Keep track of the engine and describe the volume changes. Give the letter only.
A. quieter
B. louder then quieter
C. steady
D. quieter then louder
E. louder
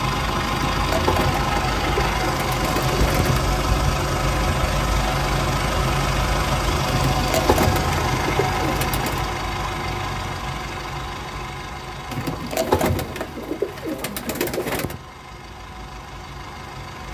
A.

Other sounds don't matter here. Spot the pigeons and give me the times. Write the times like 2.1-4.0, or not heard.
0.5-3.5, 6.8-9.2, 12.1-15.0.